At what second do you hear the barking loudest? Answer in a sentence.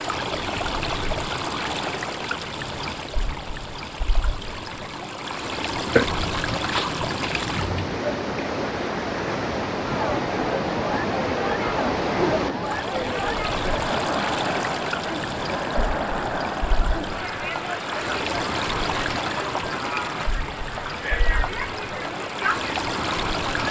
The loudest moment of the barking is at 6 seconds.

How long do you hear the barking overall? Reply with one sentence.
You can hear the barking for 2 seconds altogether.